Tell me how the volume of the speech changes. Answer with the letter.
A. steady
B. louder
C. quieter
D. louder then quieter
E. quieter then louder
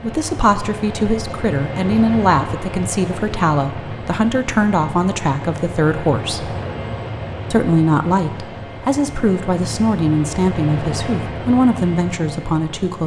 A.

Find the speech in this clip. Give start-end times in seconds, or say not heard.
0.0-6.5, 7.5-13.0.